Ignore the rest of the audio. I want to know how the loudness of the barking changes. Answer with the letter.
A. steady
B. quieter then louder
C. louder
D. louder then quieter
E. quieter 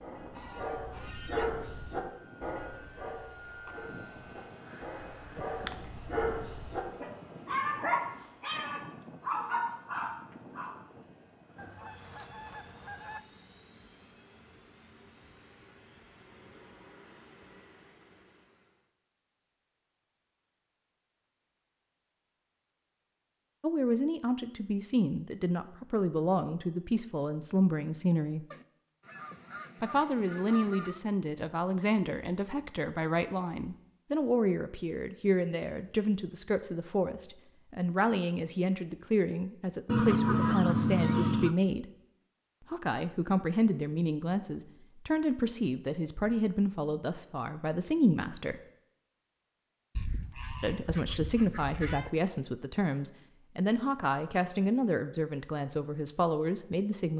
B.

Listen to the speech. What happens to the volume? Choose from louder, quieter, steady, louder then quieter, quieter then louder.
steady.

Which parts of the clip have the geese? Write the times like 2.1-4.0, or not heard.
0.3-1.6, 11.6-13.2, 28.5-31.0, 39.9-41.5, 50.0-52.1.